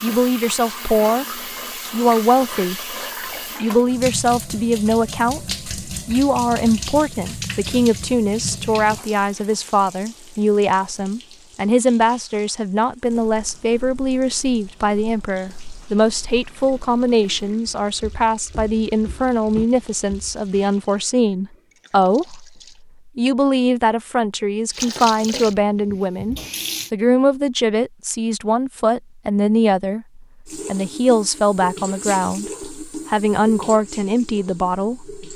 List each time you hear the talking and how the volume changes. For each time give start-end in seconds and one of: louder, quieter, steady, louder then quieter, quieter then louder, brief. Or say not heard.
0.0-3.0 brief
3.6-22.4 steady
23.1-35.2 steady.